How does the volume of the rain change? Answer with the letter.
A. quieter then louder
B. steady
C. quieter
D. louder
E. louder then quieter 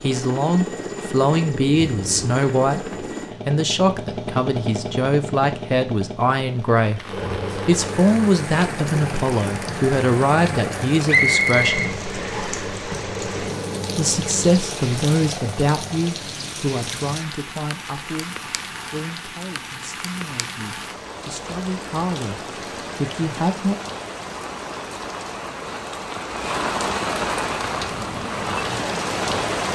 D.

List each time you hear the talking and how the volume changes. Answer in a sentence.
You can hear the talking from 0.0 to 11.9 s, at a steady volume; and from 13.9 to 23.8 s, getting quieter then louder.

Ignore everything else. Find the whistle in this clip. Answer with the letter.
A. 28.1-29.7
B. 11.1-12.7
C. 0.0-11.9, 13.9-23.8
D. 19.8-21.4
B.